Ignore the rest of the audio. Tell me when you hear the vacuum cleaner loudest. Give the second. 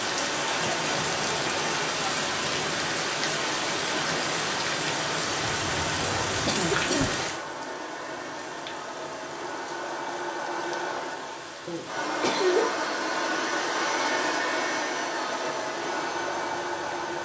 14 s.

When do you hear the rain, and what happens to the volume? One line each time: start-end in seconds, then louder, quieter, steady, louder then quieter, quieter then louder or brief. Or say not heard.
0.0-17.2 quieter.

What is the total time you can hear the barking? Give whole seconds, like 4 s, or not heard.
not heard.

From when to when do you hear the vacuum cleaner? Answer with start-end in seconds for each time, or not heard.
0.0-17.2.